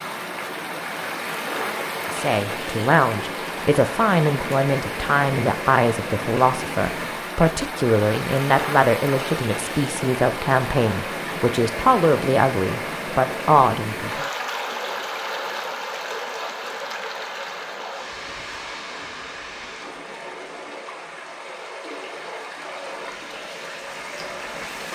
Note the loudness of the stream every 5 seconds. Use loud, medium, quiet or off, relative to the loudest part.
loud, loud, loud, loud, medium.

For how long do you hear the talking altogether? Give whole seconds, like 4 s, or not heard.
12 s.